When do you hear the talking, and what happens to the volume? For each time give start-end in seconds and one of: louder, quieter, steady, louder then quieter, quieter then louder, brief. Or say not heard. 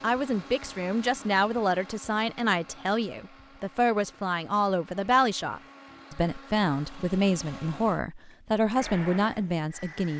0.0-10.1 steady.